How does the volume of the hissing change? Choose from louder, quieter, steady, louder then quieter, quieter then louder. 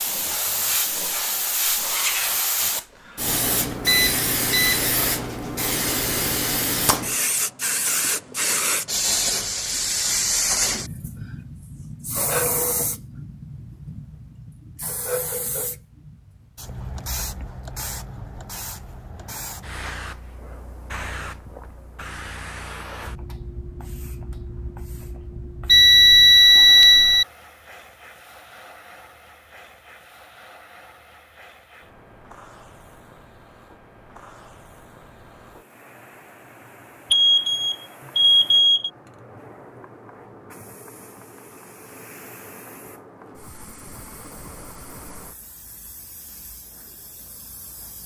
quieter.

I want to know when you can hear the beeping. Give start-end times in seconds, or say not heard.
3.9-4.9, 25.6-27.2, 37.1-38.9.